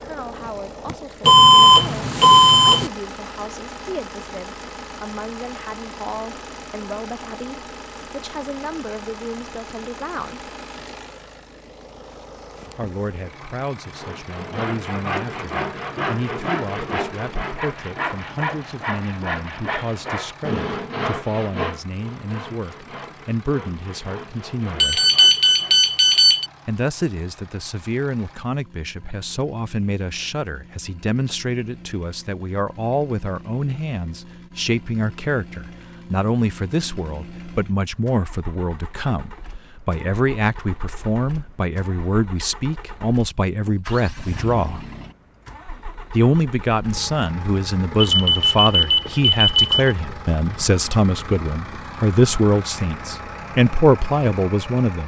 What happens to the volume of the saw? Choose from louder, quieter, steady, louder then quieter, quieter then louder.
quieter.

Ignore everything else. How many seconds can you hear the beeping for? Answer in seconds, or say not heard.
5 s.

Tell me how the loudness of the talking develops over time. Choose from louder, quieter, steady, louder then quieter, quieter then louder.
louder.